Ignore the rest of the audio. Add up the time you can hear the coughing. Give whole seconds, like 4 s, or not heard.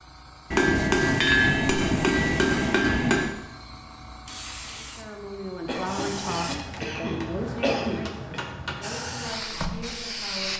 3 s.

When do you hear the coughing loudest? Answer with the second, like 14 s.
8 s.